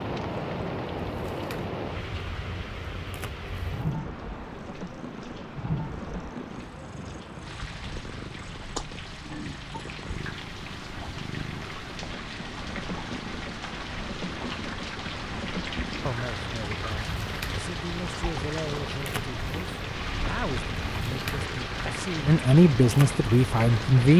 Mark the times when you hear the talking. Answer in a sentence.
The talking can be heard from 16.1 to 24.1 s.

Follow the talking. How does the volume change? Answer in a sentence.
The loudness of the talking goes up.